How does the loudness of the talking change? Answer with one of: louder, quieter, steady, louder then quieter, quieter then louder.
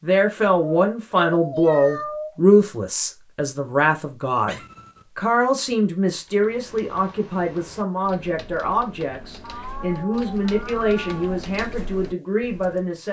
quieter.